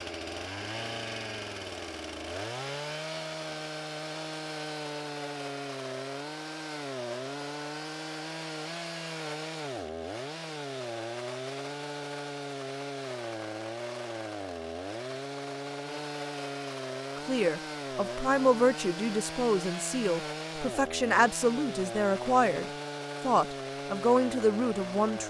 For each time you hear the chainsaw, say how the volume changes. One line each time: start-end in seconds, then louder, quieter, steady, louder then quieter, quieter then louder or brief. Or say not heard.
0.0-25.2 steady.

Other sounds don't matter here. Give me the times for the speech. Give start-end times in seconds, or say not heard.
17.1-25.2.